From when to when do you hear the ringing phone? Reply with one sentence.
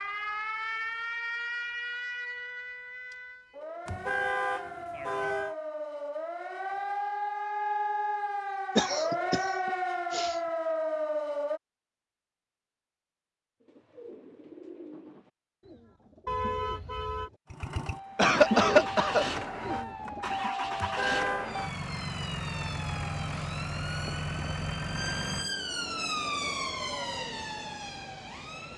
You can't hear the ringing phone here.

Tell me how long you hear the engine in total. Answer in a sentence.
You can hear the engine for 11 seconds altogether.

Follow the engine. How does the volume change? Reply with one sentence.
The loudness of the engine goes down.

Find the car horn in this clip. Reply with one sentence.
The car horn can be heard from 3.9 to 5.5 s, from 16.2 to 17.3 s and from 20.8 to 21.5 s.